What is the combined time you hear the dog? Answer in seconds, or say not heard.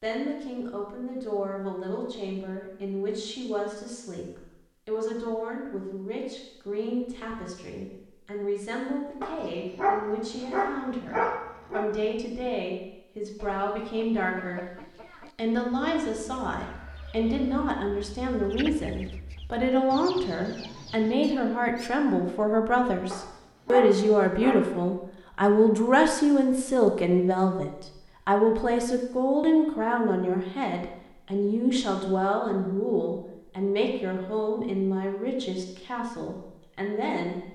4 s.